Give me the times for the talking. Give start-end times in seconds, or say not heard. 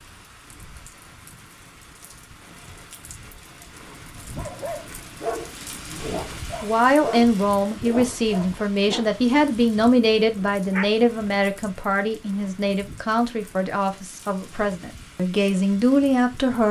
6.0-16.6.